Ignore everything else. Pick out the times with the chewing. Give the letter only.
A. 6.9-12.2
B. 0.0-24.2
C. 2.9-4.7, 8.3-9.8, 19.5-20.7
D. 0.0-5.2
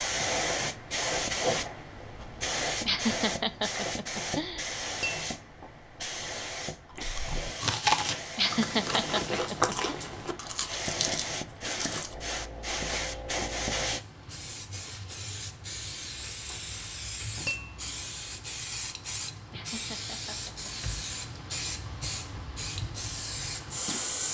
A.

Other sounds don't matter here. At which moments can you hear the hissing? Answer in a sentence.
The hissing can be heard from 0.0 to 24.2 s.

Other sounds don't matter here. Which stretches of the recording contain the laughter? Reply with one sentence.
The laughter can be heard from 2.9 to 4.7 s, from 8.3 to 9.8 s and from 19.5 to 20.7 s.